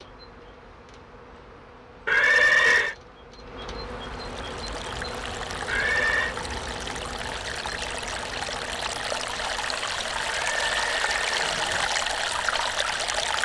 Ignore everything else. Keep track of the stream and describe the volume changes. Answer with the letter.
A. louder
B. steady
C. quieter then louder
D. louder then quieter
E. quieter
A.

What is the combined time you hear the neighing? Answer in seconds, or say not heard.
3 s.